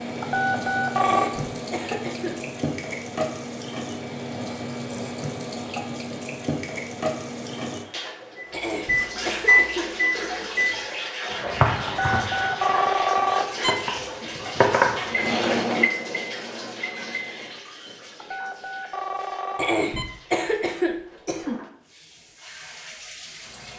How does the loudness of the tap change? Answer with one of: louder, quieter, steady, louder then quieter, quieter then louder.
quieter.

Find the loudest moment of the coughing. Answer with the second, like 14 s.
20 s.